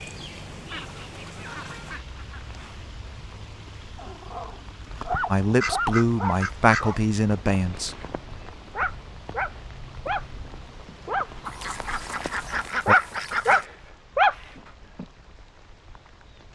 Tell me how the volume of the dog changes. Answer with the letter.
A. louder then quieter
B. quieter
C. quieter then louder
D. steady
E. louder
E.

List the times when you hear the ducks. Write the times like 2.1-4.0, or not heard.
0.7-2.5, 5.6-6.8, 11.4-13.7.